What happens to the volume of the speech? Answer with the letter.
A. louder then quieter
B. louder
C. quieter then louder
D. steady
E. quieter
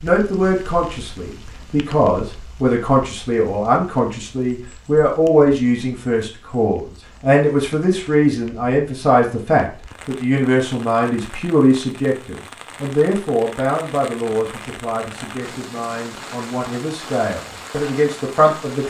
E.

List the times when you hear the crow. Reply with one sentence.
You can't hear the crow here.